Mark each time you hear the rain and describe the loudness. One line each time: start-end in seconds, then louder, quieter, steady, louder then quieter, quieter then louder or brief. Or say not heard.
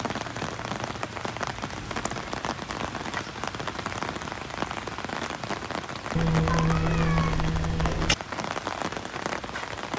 0.0-9.9 steady.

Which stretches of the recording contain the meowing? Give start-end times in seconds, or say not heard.
1.7-2.1, 6.2-8.2.